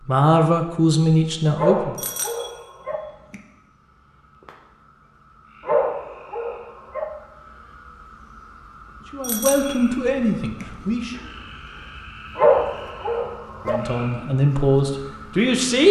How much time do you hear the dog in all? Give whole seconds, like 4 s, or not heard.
4 s.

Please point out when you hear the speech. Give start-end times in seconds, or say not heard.
0.1-1.9, 9.1-11.2, 13.7-15.8.